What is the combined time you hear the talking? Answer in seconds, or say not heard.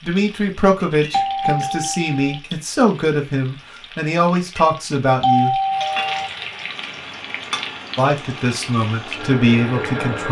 8 s.